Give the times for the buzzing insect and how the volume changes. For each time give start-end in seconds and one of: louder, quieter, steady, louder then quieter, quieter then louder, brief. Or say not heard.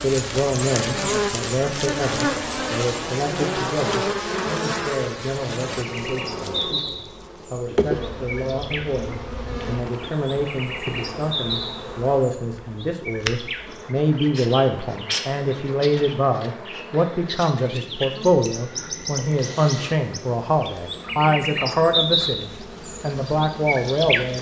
0.0-24.3 quieter.